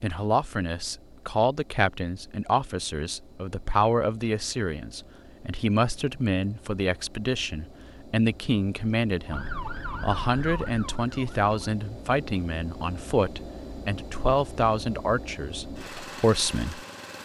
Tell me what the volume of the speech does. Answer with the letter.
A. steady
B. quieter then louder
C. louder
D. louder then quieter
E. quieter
A.